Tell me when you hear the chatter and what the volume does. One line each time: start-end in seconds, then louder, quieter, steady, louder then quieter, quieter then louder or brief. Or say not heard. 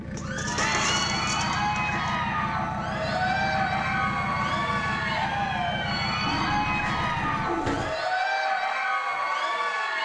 0.1-9.9 steady.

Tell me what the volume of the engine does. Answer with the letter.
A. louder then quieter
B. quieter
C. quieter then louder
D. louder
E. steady
E.